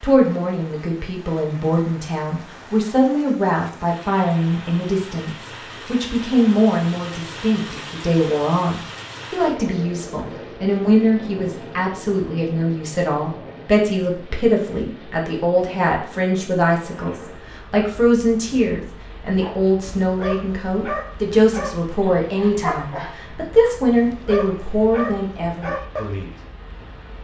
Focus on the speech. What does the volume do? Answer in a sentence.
The volume of the speech stays about the same.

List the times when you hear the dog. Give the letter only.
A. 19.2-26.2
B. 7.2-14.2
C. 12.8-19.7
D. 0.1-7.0
A.